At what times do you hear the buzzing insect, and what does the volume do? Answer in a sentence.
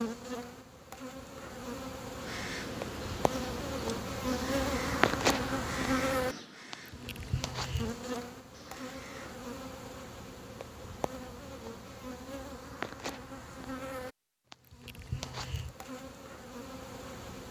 You can hear the buzzing insect from 0.0 to 17.4 s, getting louder then quieter.